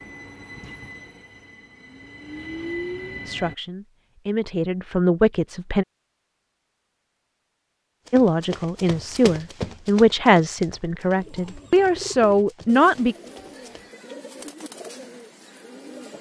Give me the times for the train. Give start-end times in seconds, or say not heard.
0.0-3.5.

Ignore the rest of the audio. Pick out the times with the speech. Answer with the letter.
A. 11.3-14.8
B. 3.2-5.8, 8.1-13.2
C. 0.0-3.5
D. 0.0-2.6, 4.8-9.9
B.